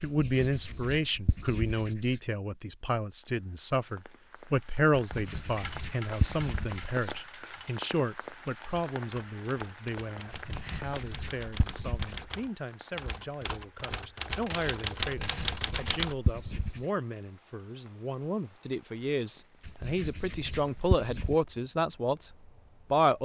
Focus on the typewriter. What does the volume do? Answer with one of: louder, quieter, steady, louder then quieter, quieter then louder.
louder.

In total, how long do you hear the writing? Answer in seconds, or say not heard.
10 s.